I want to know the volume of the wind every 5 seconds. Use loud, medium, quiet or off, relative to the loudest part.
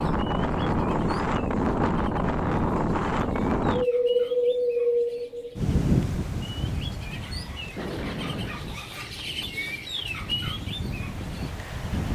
loud, medium, medium.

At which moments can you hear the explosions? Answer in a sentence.
You can hear the explosions from 7.8 to 8.8 s.